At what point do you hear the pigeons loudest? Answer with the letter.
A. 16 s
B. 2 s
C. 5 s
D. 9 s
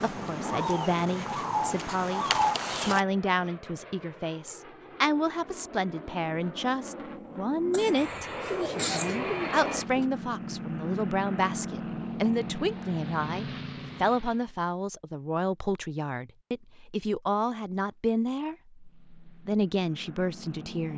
B.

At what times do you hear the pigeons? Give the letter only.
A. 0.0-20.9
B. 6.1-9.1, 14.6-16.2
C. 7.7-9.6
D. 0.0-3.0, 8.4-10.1
D.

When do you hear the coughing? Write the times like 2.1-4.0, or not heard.
7.7-9.6.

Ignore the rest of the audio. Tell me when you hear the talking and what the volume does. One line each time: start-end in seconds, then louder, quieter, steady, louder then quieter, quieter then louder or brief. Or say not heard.
0.0-20.9 steady.